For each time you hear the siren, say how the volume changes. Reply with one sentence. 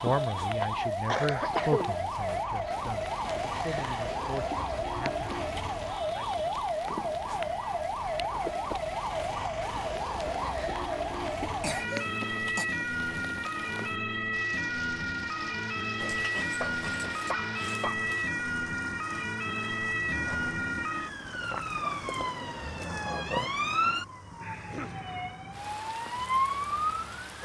The siren can be heard from 0.0 to 27.4 s, at a steady volume.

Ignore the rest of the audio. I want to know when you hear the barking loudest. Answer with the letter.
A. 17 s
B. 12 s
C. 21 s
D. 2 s
A.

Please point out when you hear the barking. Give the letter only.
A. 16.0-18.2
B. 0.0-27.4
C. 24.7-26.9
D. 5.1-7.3
A.